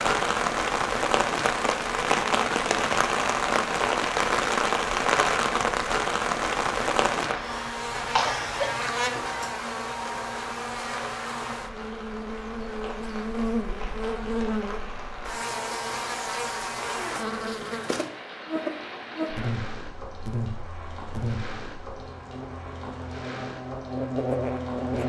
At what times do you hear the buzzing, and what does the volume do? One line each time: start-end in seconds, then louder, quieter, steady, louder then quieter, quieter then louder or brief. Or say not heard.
7.3-25.0 steady.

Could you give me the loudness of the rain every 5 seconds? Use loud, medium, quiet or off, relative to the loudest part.
loud, loud, quiet, quiet, quiet.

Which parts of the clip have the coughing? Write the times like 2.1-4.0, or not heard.
7.3-8.7.